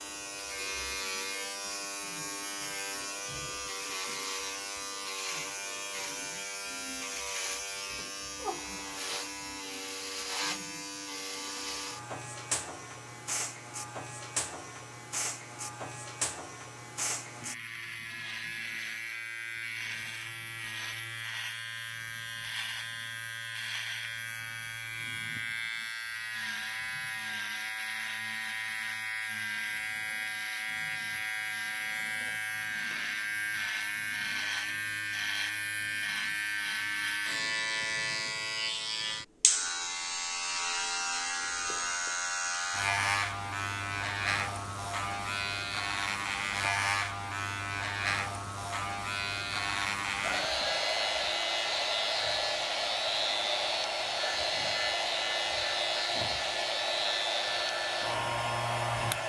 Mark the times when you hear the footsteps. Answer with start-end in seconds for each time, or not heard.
not heard.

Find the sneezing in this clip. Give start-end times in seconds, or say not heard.
not heard.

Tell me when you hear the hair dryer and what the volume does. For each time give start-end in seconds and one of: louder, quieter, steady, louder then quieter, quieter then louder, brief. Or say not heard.
50.2-59.2 steady.